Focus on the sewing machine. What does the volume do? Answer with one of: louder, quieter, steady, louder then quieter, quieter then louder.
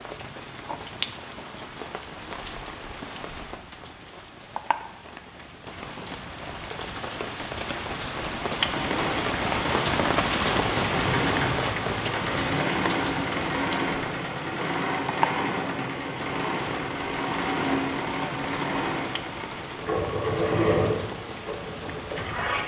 steady.